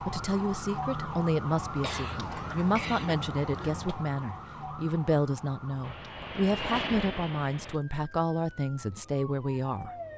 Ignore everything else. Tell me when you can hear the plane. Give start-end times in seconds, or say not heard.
5.8-7.8.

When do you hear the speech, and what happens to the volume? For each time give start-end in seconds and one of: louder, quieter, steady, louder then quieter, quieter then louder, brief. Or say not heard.
0.0-9.9 steady.